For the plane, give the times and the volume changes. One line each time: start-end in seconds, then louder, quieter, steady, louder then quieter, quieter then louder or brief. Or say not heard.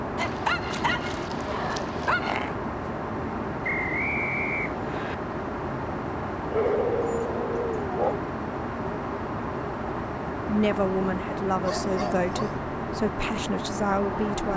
0.0-14.5 steady.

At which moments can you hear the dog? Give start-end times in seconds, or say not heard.
0.1-2.5, 6.5-8.2, 11.6-12.6.